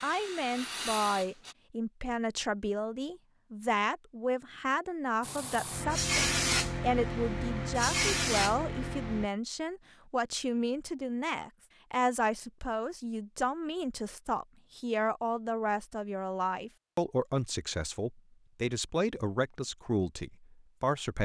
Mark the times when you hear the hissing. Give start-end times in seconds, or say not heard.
0.0-1.6, 5.2-9.3.